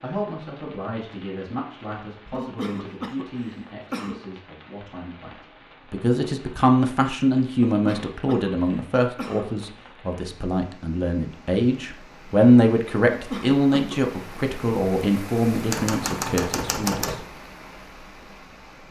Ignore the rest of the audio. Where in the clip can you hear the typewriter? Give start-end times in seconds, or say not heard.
15.7-17.2.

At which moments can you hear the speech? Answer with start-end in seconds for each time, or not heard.
0.0-17.1.